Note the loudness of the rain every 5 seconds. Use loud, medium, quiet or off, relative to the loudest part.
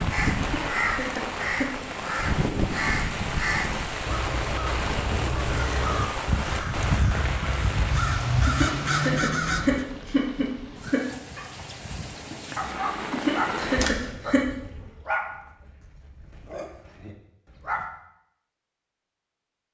loud, loud, medium, off.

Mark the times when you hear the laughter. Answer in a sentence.
You can hear the laughter from 0.3 to 1.7 s, from 8.4 to 11.1 s and from 13.1 to 14.4 s.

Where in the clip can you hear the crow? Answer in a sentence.
You can hear the crow from 0.1 to 9.8 s.